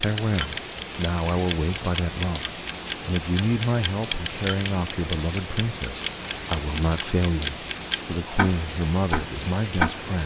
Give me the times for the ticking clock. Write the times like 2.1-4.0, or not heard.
0.0-10.2.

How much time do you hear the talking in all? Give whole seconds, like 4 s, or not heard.
10 s.